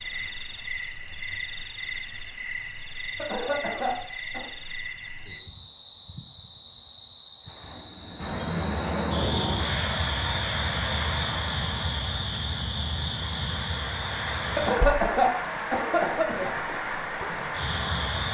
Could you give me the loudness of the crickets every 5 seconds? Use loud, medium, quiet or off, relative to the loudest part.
loud, loud, medium, medium.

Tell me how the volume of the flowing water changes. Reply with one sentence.
The volume of the flowing water goes down, then up.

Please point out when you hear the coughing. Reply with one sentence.
The coughing can be heard from 3.1 to 4.5 s and from 14.6 to 16.5 s.